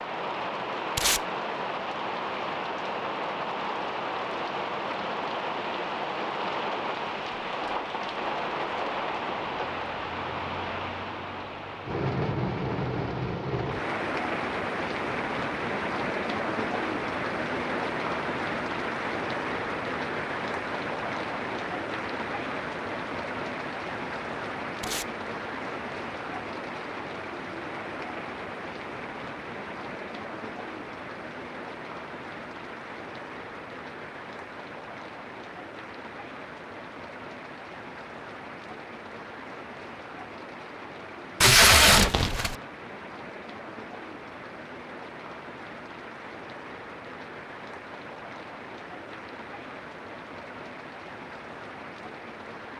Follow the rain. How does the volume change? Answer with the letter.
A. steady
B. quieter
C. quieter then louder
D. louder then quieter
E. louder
B.